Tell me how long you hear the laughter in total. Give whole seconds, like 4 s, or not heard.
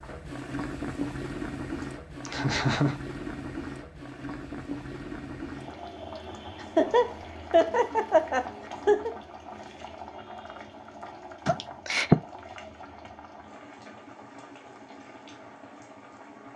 4 s.